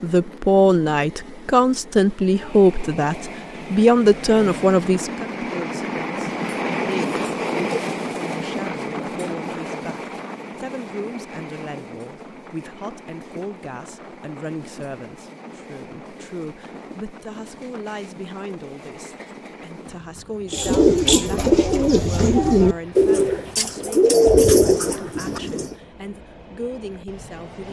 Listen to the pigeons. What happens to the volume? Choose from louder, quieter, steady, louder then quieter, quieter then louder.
steady.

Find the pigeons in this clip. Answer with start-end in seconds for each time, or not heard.
20.5-25.8.